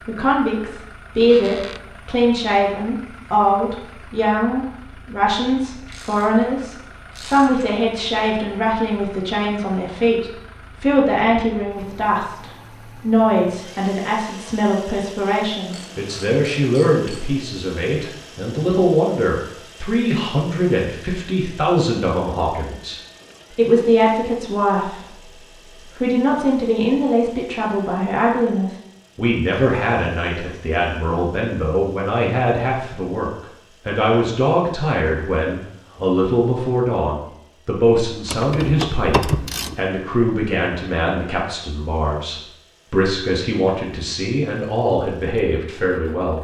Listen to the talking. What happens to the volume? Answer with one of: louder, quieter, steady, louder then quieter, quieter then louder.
steady.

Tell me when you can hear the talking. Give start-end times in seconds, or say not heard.
0.1-46.3.